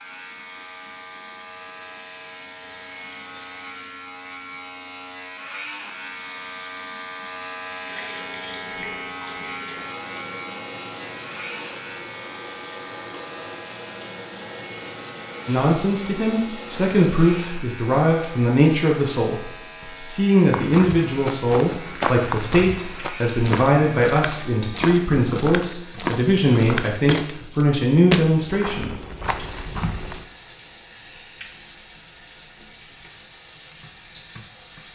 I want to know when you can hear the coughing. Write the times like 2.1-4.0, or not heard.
not heard.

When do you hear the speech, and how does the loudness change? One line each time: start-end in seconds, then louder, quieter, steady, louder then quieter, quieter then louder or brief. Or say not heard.
15.4-28.9 steady.